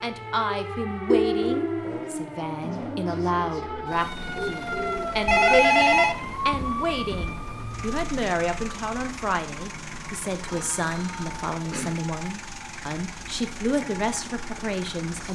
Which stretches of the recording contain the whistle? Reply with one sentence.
The whistle can't be heard in this clip.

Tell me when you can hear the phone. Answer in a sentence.
You can hear the phone from 1.1 to 2.0 s, from 5.2 to 7.3 s and from 10.4 to 12.1 s.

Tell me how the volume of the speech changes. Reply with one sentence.
The loudness of the speech stays about the same.